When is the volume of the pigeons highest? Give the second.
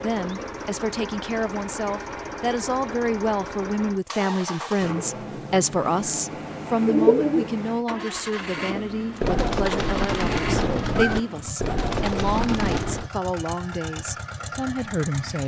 7 s.